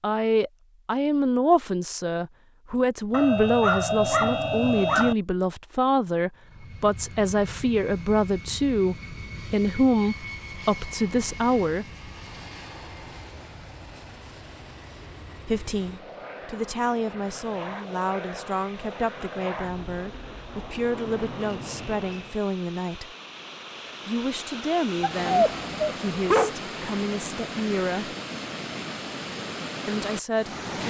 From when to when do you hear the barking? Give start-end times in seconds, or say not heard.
3.1-5.2, 25.0-26.5.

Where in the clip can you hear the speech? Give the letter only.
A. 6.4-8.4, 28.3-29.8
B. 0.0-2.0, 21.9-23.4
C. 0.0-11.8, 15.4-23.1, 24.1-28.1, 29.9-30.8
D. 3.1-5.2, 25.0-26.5
C.